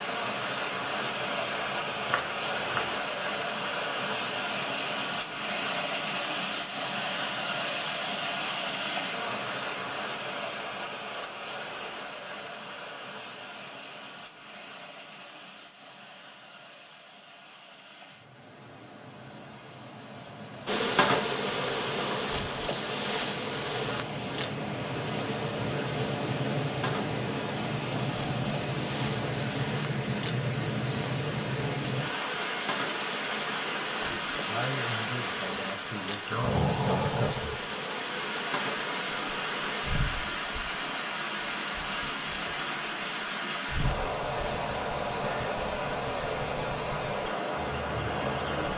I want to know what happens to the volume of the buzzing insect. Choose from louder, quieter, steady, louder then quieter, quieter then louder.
quieter.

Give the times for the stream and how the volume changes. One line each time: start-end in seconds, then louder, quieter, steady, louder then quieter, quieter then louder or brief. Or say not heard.
0.0-48.7 quieter then louder.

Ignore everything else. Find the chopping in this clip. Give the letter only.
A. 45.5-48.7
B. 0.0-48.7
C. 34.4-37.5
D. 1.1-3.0
D.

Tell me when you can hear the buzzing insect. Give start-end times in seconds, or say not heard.
20.6-48.7.